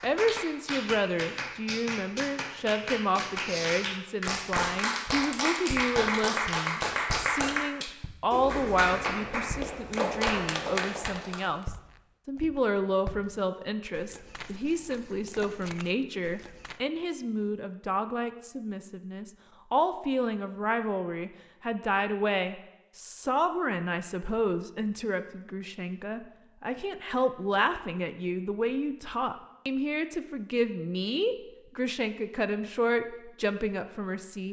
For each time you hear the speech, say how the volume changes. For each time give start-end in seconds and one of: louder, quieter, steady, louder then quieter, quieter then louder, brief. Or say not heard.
0.0-34.4 steady.